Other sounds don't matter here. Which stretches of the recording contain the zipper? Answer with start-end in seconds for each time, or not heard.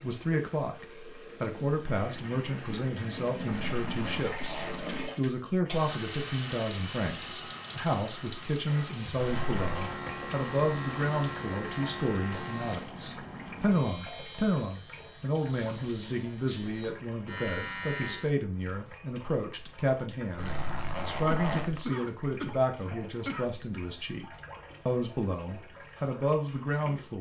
3.5-4.9, 9.2-9.9, 20.4-21.9.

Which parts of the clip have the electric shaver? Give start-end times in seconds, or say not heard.
9.2-18.4.